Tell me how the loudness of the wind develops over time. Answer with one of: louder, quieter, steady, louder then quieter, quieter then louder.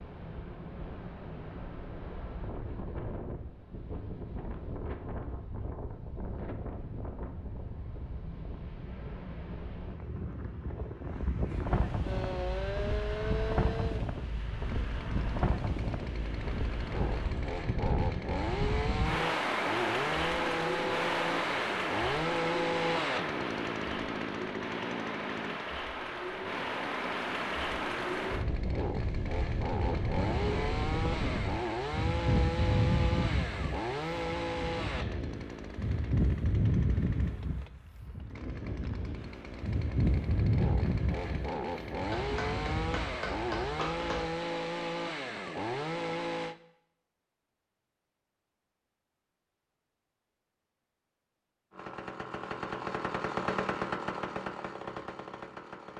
louder.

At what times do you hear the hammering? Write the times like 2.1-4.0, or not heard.
42.1-44.5.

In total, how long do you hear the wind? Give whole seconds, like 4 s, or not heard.
43 s.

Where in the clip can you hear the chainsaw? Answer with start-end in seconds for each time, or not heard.
12.0-46.5, 51.7-55.9.